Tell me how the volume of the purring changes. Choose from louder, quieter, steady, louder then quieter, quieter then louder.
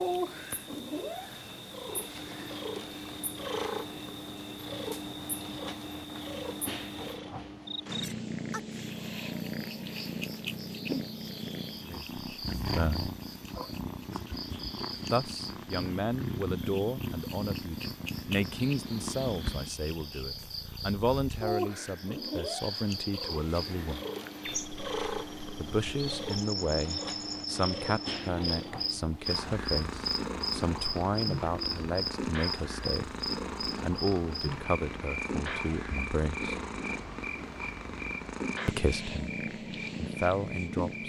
steady.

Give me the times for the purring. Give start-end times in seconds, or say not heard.
0.0-41.0.